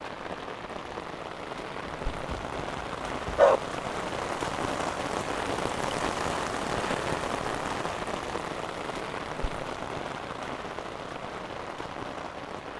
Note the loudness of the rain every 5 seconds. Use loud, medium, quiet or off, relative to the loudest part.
loud, loud, medium.